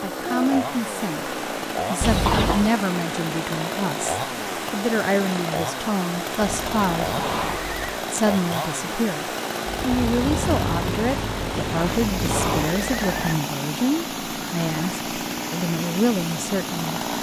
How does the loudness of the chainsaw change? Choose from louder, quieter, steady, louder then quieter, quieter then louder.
steady.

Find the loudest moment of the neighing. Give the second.
2 s.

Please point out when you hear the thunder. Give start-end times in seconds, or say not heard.
9.8-12.7.